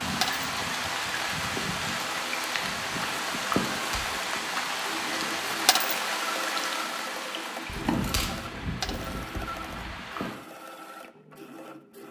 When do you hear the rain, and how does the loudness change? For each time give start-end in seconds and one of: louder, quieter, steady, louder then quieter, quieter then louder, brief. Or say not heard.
0.0-10.3 quieter.